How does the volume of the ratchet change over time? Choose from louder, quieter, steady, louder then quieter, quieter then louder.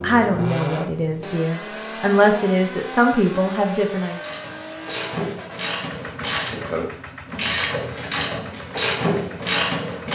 louder.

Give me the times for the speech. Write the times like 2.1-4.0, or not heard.
0.0-4.2.